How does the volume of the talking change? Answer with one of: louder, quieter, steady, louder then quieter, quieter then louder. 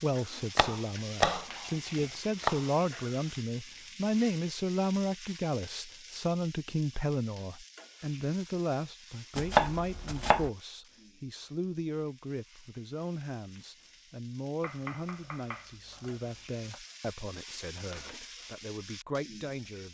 quieter.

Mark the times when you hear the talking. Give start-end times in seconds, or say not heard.
0.0-19.9.